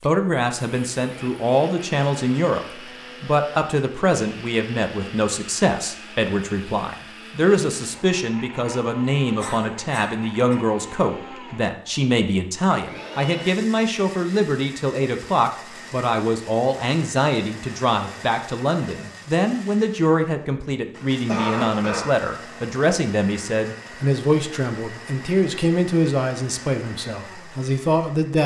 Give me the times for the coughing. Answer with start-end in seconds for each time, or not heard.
9.3-10.6, 21.2-22.1.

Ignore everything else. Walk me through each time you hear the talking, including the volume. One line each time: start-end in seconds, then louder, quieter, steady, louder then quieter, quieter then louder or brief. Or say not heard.
0.0-28.4 steady.